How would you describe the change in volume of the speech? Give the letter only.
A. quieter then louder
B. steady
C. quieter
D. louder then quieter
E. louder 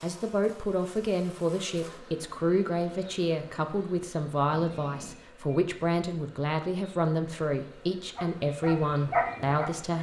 B.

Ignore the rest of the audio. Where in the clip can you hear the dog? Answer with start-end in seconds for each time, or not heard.
8.2-9.9.